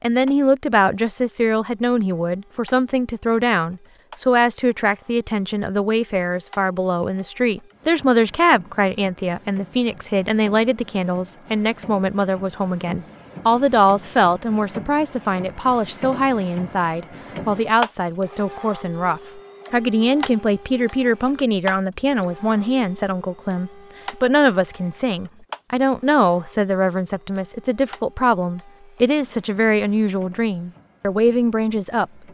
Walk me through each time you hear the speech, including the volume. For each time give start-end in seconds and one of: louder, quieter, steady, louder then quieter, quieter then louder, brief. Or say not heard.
0.0-32.0 steady.